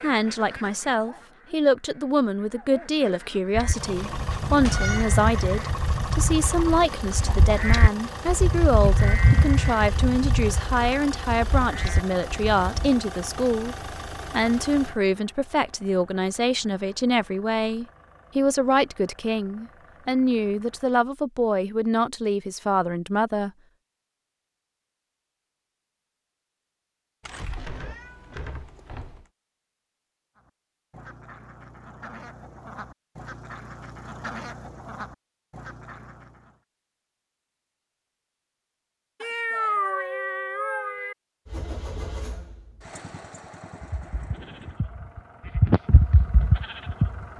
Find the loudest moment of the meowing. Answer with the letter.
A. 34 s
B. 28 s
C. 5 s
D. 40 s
D.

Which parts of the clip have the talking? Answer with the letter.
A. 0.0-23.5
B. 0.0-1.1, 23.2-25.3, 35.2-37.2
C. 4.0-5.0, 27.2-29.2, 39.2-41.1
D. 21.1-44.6
A.